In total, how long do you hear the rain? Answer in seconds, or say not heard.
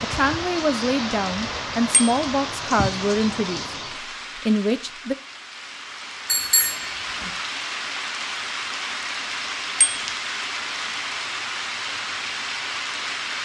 13 s.